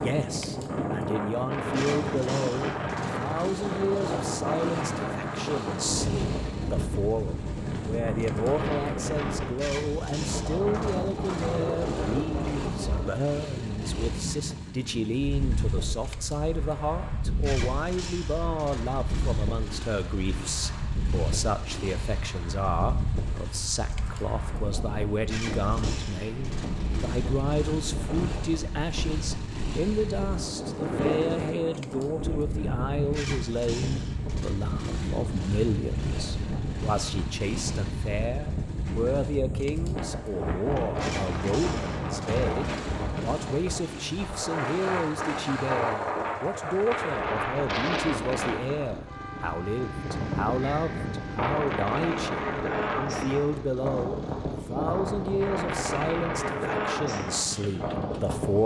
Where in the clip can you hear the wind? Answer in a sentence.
The wind can be heard from 0.0 to 58.6 s.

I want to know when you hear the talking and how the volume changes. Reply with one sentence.
You can hear the talking from 0.0 to 58.6 s, at a steady volume.